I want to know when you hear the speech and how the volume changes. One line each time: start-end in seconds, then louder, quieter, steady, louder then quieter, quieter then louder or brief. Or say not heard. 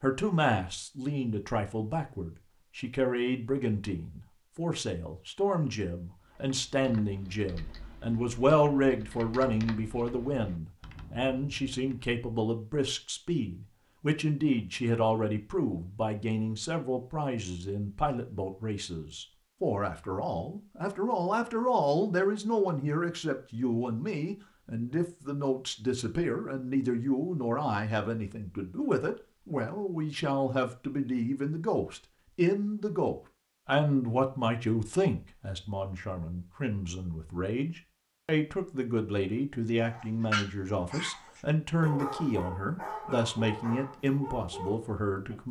0.0-45.4 steady.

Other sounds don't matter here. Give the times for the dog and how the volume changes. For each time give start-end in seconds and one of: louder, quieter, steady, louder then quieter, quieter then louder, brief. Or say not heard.
39.8-45.4 quieter.